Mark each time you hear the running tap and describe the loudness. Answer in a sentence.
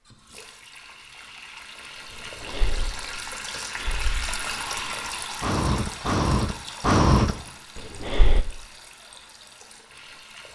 You can hear the running tap from 0.0 to 10.5 s, getting louder then quieter.